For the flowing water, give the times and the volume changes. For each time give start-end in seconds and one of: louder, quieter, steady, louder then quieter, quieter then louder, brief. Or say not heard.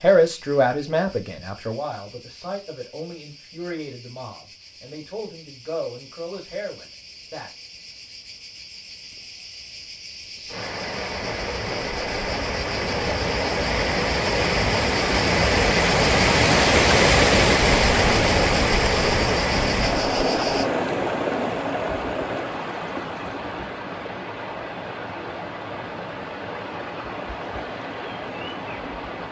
10.4-29.2 louder then quieter.